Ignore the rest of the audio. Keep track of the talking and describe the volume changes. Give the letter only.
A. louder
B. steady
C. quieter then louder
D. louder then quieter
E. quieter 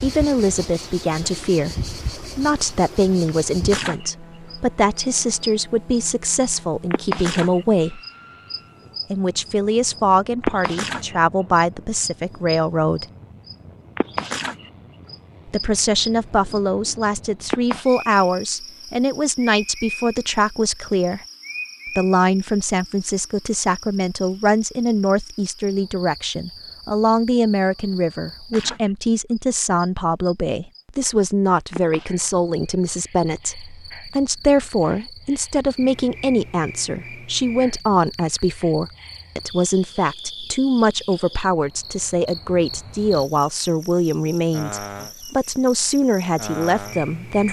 B.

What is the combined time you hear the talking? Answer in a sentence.
You can hear the talking for 43 seconds altogether.